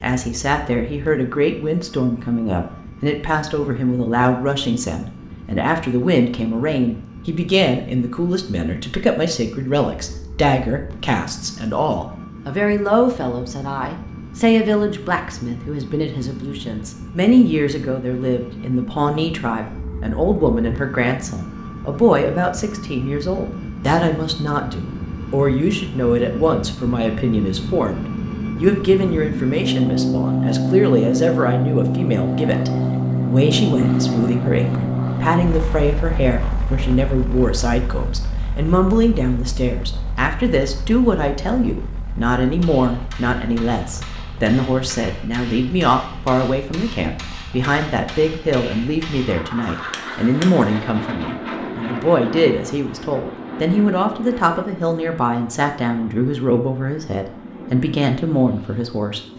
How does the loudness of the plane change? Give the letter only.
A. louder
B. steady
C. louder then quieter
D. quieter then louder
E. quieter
C.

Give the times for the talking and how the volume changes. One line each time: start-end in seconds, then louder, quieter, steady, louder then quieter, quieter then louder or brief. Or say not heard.
0.0-59.2 steady.